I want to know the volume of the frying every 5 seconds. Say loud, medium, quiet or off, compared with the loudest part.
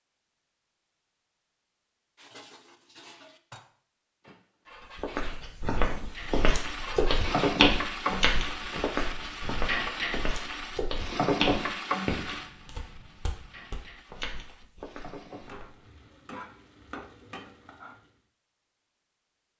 off, loud, loud, quiet.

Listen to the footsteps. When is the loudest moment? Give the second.
8 s.